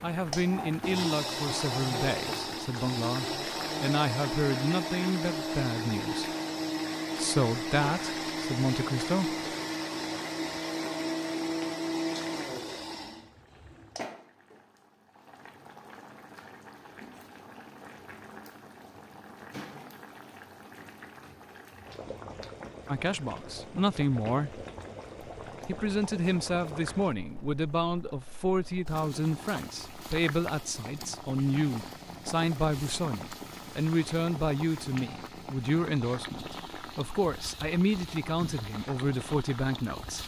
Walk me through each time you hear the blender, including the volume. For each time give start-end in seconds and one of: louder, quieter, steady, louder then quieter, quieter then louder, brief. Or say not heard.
0.1-14.1 steady.